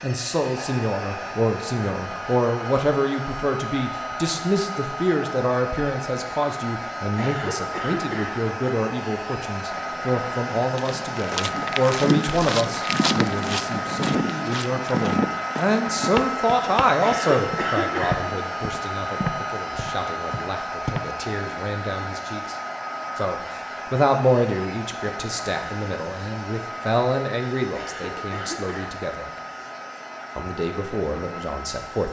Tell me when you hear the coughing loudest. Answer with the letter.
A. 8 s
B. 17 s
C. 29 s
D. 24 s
B.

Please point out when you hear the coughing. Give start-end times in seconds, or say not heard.
7.0-8.3, 16.8-18.2, 27.6-28.9.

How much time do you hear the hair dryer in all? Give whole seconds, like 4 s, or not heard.
32 s.